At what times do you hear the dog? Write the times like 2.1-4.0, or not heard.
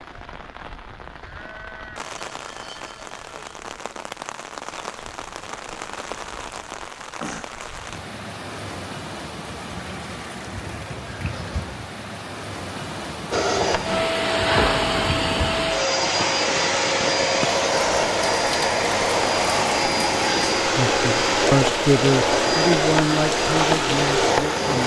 not heard.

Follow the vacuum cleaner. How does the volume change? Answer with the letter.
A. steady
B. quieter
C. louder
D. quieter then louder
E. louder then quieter
A.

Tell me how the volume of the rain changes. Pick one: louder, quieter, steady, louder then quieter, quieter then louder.
louder.